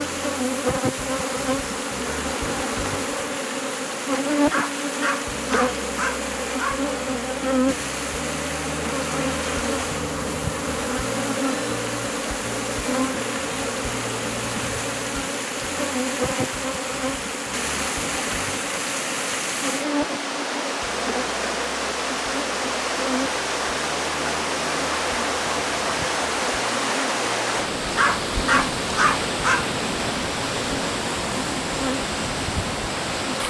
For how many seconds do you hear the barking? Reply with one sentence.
The barking can be heard for 4 seconds in total.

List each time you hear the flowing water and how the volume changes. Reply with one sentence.
You can hear the flowing water from 0.0 to 33.4 s, getting louder.